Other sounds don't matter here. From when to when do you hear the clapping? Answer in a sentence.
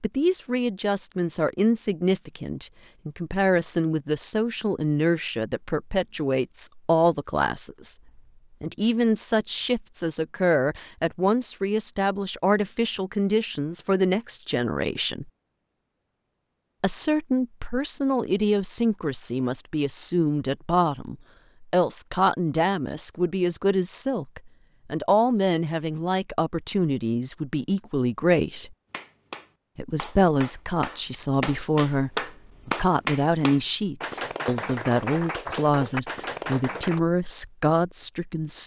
The clapping can be heard from 28.9 to 37.0 s.